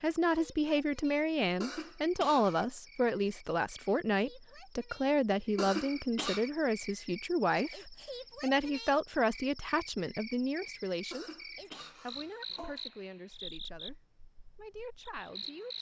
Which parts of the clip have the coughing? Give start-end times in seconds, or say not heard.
1.6-2.6, 5.5-6.5, 11.1-12.8.